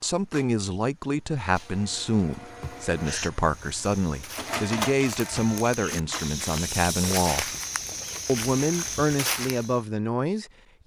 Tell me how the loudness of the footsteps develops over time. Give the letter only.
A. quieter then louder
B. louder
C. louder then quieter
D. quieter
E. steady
B.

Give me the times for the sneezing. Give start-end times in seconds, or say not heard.
2.6-3.3, 5.8-6.2.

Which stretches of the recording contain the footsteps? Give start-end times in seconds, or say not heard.
3.4-9.8.